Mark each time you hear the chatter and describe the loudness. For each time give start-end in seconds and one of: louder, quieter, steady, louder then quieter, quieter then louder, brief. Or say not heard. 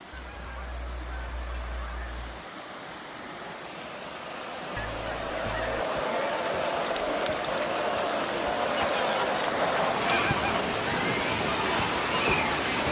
0.2-12.8 louder.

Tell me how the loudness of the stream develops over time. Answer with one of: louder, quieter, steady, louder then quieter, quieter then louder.
louder.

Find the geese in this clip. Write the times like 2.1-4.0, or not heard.
0.1-2.4, 4.8-5.8, 8.6-10.7.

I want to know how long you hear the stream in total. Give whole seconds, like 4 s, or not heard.
13 s.